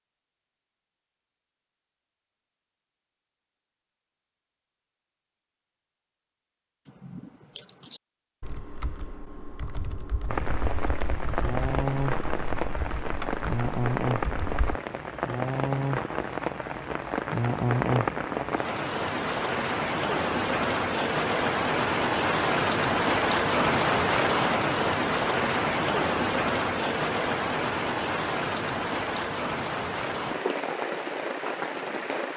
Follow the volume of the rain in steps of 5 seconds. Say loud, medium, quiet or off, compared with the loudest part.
off, off, medium, loud, loud, loud, medium.